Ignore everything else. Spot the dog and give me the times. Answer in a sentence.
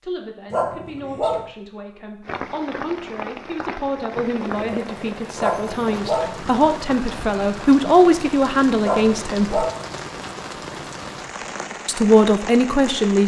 You can hear the dog from 0.5 to 1.4 s, from 5.3 to 6.3 s and from 8.8 to 9.8 s.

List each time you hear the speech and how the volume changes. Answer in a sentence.
You can hear the speech from 0.0 to 9.7 s, getting louder; and briefly from 11.8 to 13.2 s.